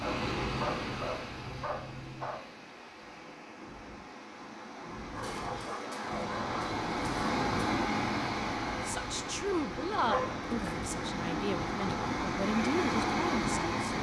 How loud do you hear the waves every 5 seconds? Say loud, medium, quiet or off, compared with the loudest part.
medium, loud, loud.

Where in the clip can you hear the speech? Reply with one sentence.
The speech can be heard from 8.8 to 13.9 s.